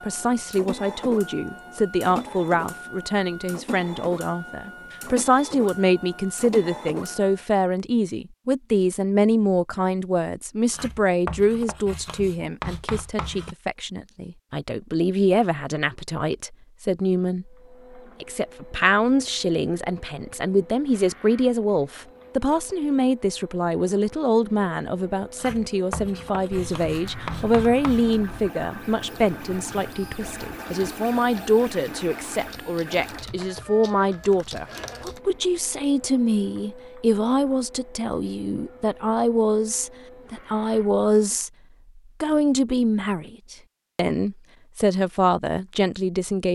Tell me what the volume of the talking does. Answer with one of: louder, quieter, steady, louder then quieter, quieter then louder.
steady.